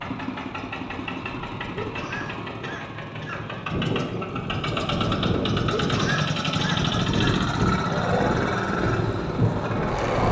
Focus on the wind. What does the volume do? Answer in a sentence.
The loudness of the wind goes up.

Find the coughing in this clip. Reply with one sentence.
The coughing can be heard from 1.8 to 3.6 s and from 5.7 to 7.3 s.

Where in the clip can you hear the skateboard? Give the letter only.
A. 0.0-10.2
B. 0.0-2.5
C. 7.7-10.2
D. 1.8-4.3
C.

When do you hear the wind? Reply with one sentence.
You can hear the wind from 0.0 to 10.2 s.